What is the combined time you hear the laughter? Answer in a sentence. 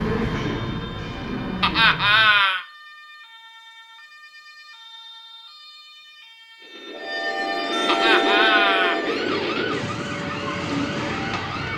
You can hear the laughter for 2 seconds altogether.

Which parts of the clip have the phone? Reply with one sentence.
You can't hear the phone here.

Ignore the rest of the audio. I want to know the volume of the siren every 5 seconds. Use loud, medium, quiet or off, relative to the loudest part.
quiet, loud, loud.